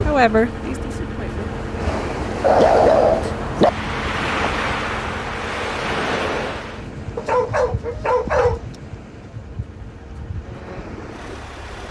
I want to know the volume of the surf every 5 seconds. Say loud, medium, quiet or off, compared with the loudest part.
loud, loud, medium.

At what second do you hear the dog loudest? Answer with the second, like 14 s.
3 s.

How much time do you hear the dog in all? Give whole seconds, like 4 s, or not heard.
3 s.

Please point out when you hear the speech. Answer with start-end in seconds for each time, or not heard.
0.1-1.4.